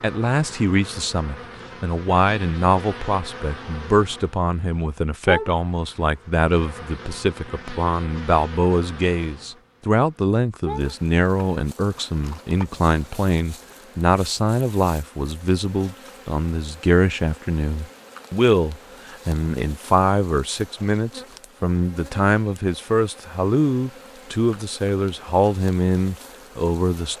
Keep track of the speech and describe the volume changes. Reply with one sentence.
The loudness of the speech stays about the same.